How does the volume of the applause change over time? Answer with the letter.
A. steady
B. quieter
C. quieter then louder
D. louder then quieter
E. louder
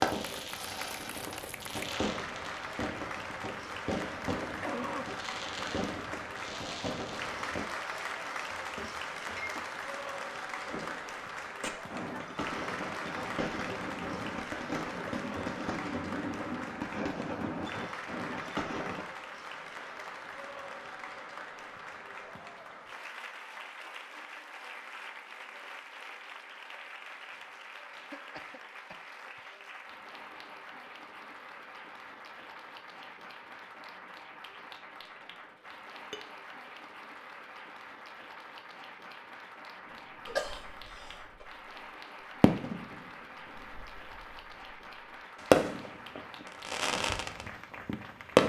B.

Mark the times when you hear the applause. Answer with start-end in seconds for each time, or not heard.
0.1-48.4.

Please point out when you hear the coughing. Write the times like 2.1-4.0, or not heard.
4.4-5.0, 27.9-29.6, 40.2-41.5.